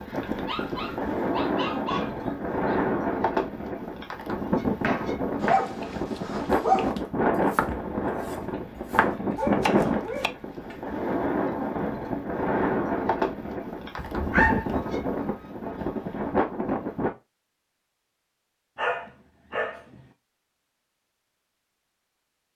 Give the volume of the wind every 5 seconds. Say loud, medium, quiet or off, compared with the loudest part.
loud, loud, loud, loud, off.